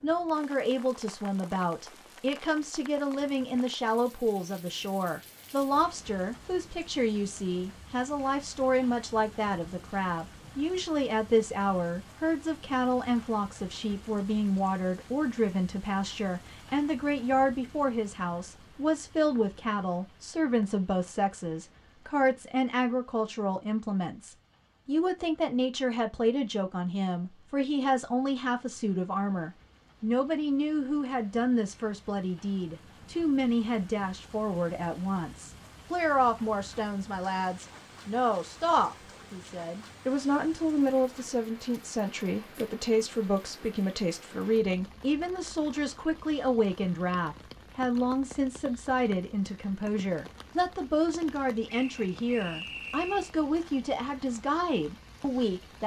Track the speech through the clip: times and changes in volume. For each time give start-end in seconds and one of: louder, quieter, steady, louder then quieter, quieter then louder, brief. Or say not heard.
0.0-55.8 steady.